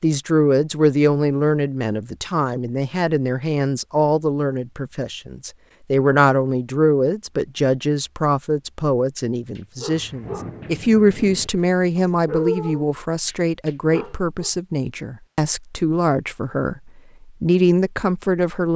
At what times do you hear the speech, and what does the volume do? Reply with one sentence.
You can hear the speech from 0.0 to 18.7 s, at a steady volume.